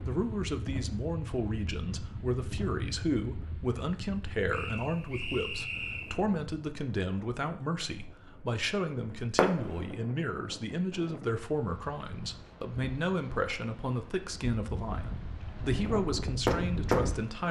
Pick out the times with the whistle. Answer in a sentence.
You can hear the whistle from 4.5 to 6.2 s.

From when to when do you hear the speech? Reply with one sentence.
You can hear the speech from 0.1 to 17.4 s.